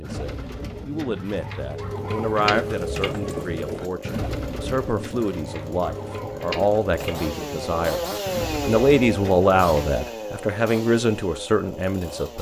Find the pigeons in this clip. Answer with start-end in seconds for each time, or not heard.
0.0-9.9.